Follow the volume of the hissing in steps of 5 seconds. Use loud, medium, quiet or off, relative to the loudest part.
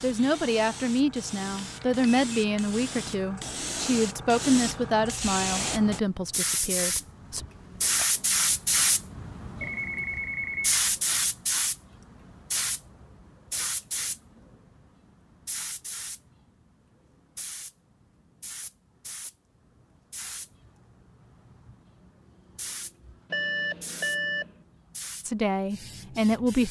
medium, loud, loud, quiet, quiet, quiet.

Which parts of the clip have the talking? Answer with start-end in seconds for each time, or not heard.
0.0-7.4, 25.2-26.6.